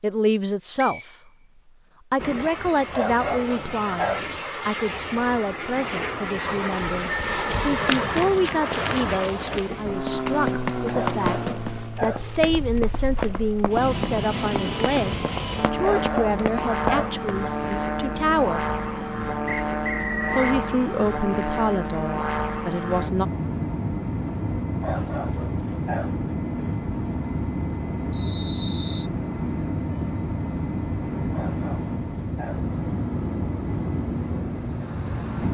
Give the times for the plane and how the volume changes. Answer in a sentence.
The plane can be heard from 2.1 to 35.4 s, at a steady volume.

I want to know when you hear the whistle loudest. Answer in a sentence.
The volume of the whistle peaks at 20 seconds.